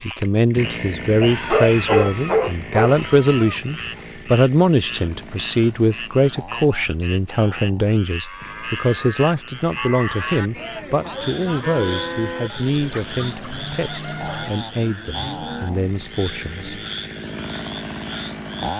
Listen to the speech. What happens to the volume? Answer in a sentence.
The loudness of the speech goes down.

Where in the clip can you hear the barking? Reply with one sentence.
The barking can be heard from 1.2 to 3.0 s.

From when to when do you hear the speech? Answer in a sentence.
You can hear the speech from 0.0 to 16.8 s.